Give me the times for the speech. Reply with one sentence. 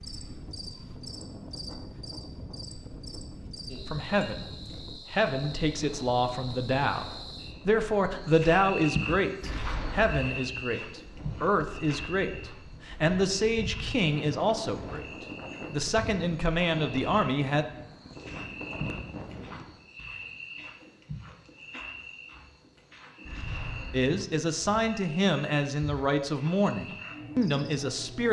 The speech can be heard from 3.9 to 4.5 s, from 5.1 to 17.6 s and from 23.9 to 28.2 s.